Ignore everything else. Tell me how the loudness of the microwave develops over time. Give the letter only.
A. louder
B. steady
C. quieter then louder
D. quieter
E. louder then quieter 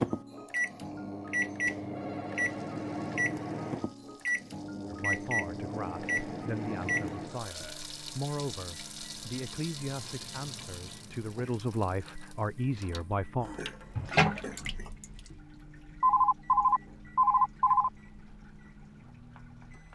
D.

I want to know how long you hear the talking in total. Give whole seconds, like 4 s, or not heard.
9 s.